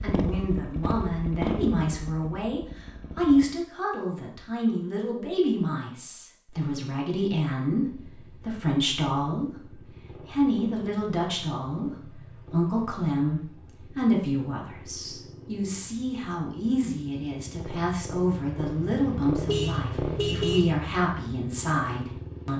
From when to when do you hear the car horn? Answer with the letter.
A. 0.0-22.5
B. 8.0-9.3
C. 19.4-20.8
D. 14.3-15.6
C.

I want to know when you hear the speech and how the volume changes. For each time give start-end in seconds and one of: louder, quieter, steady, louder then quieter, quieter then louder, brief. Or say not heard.
0.0-22.5 steady.